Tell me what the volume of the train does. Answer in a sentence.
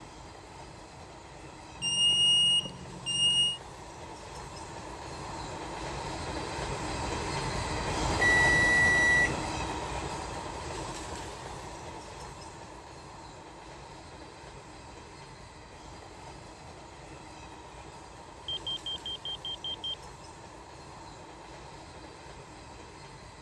The loudness of the train goes up, then down.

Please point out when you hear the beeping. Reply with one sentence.
The beeping can be heard from 1.8 to 3.6 s, from 8.2 to 9.4 s and from 18.4 to 19.9 s.